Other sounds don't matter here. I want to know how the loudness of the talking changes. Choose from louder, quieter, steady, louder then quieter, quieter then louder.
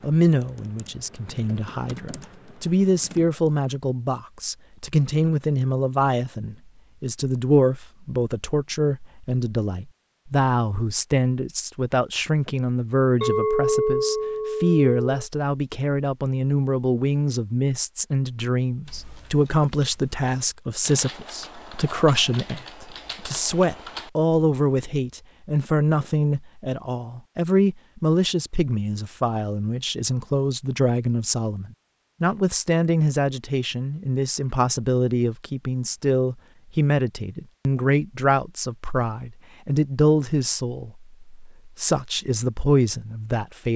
steady.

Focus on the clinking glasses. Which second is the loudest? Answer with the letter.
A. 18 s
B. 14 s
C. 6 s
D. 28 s
B.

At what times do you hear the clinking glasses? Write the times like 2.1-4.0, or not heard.
13.2-15.0.